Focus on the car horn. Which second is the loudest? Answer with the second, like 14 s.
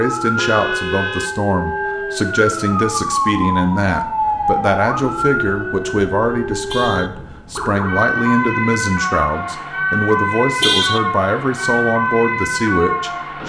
11 s.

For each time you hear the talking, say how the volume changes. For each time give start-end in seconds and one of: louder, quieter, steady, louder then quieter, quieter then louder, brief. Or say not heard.
0.0-13.4 steady.